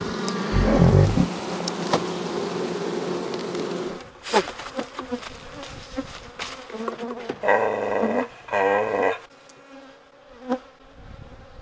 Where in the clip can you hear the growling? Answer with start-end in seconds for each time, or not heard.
0.5-1.3, 7.4-9.2.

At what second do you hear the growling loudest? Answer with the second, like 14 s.
1 s.